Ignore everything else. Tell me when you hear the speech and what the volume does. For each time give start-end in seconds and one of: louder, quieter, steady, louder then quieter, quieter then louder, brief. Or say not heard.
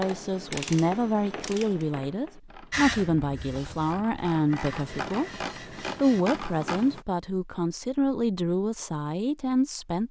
0.0-10.0 steady.